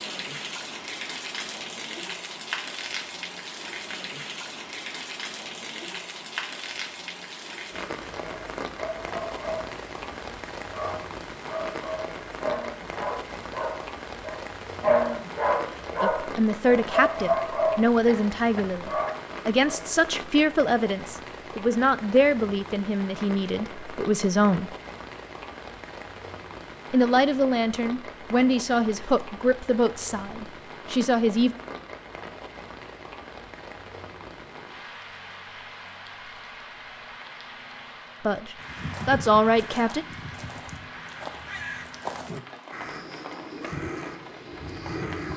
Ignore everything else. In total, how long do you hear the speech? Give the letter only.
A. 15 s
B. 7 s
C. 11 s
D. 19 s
A.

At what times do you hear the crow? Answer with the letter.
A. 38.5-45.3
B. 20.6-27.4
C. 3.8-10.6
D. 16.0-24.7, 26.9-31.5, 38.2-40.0
A.